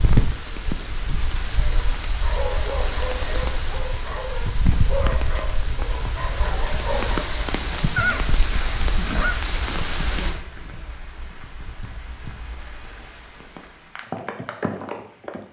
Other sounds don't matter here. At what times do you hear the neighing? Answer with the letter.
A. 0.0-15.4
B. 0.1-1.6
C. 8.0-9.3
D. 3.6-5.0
C.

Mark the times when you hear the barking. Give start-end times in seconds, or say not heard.
1.6-7.3.